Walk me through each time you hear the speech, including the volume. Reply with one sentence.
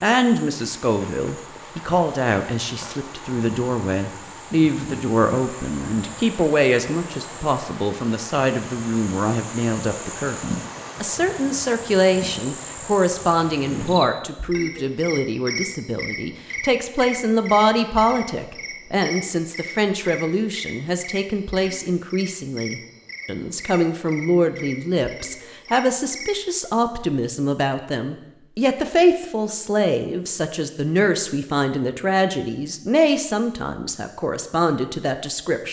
The speech can be heard from 0.0 to 35.6 s, at a steady volume.